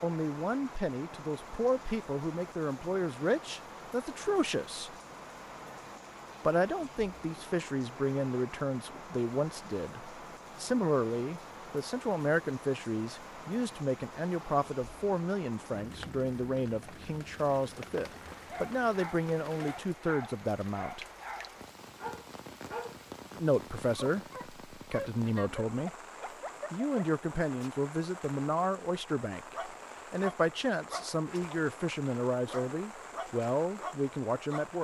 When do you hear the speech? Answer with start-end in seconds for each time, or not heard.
0.0-4.9, 6.5-21.1, 23.4-25.9, 26.7-34.7.